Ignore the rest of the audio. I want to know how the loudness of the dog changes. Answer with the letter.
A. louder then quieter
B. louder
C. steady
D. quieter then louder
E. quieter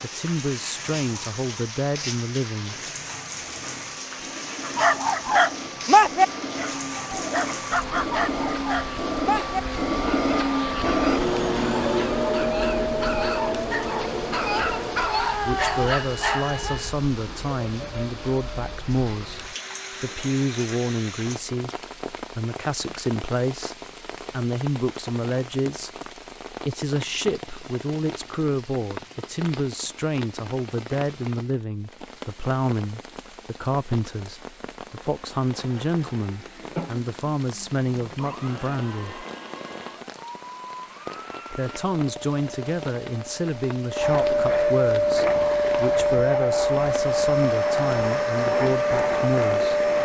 D.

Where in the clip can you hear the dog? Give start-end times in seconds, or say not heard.
4.7-16.8.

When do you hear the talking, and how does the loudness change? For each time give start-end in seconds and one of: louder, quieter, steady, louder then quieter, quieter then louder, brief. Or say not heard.
0.0-2.8 brief
15.4-39.2 steady
41.5-49.9 steady.